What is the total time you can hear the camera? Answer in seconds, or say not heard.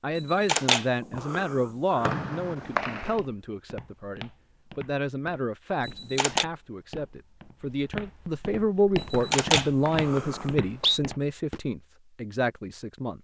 4 s.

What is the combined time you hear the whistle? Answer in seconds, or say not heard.
3 s.